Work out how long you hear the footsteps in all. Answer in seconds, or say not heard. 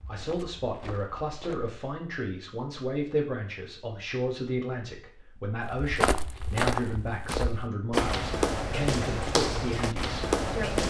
7 s.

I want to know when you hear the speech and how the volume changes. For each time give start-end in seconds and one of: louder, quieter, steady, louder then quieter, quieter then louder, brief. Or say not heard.
0.1-10.8 steady.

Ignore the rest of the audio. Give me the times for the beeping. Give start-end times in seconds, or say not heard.
not heard.